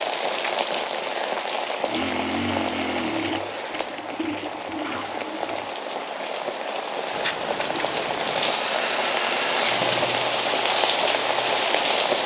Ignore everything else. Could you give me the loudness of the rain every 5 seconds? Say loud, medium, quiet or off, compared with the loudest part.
medium, medium, loud.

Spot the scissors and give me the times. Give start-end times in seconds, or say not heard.
7.1-8.6.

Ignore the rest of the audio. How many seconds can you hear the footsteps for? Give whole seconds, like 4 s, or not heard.
not heard.